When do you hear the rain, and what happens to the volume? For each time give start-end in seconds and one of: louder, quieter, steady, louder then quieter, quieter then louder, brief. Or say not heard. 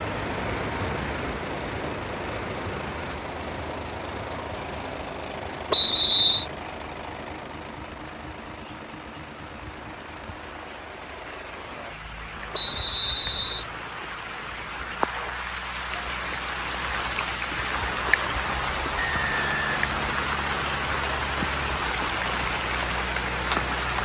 0.0-24.0 quieter then louder.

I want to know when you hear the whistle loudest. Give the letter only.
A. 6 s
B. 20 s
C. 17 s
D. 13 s
A.